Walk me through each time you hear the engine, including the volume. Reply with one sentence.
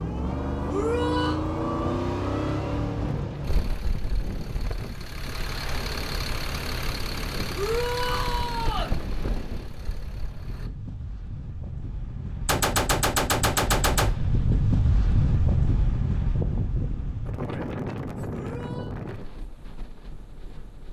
You can hear the engine from 0.0 to 10.7 s, getting quieter.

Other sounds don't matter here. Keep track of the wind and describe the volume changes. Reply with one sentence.
The loudness of the wind goes up, then down.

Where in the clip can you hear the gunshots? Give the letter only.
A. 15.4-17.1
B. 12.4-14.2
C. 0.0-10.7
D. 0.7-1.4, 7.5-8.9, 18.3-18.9
B.